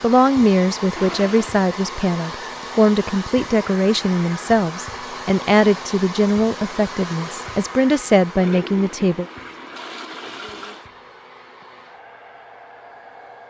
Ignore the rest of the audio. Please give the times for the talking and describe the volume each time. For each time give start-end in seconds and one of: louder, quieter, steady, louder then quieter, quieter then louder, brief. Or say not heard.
0.0-9.2 steady.